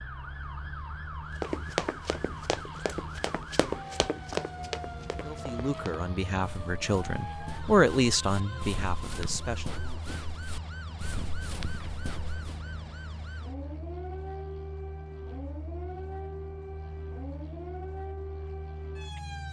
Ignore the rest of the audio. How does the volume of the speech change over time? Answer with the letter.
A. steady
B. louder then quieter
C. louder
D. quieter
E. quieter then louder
B.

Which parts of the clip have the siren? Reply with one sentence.
The siren can be heard from 0.0 to 19.4 s.